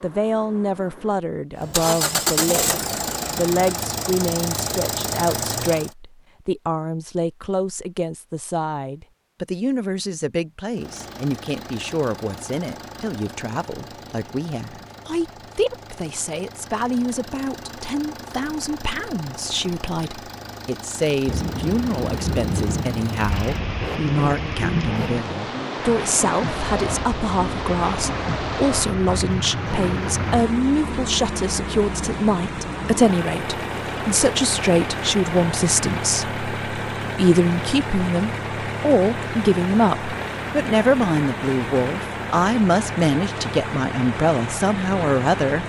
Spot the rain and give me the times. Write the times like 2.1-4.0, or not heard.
21.2-45.6.